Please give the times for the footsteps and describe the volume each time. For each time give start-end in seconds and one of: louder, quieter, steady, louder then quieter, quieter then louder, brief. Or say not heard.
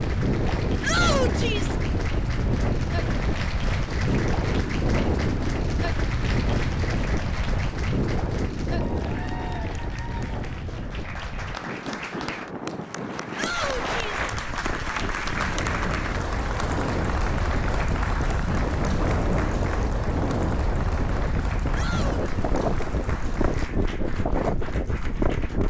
not heard.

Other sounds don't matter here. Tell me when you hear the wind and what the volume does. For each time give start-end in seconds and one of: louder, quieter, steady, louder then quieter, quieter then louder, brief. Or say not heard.
0.0-25.6 quieter then louder.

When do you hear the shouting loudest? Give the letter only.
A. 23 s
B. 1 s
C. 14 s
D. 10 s
B.